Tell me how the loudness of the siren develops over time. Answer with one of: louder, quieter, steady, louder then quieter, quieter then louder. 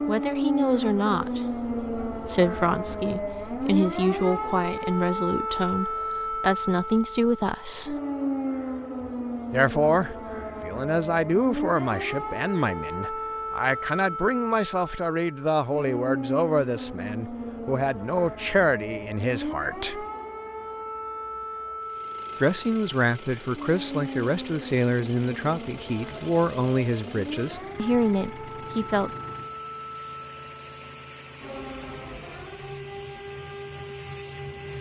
quieter.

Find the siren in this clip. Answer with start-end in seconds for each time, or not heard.
0.0-34.7.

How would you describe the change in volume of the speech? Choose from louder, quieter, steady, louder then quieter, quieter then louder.
steady.